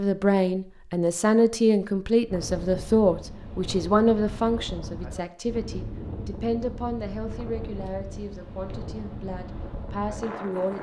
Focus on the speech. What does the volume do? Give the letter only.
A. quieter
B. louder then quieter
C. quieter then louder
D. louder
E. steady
A.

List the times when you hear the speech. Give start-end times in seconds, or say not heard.
0.0-10.7.